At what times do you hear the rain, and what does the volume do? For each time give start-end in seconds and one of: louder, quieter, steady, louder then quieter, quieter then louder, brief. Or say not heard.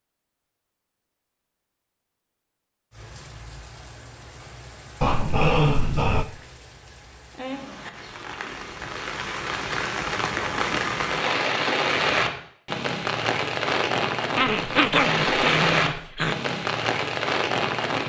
2.9-18.0 louder.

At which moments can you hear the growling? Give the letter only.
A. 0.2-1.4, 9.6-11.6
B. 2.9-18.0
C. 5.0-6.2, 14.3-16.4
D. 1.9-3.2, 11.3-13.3
C.